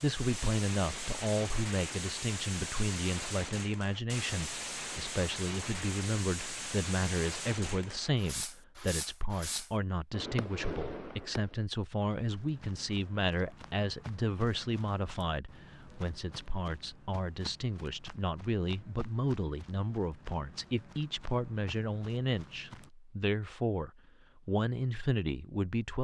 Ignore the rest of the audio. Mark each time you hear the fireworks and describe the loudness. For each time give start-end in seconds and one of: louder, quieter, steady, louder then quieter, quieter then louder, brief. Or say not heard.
0.0-11.6 steady.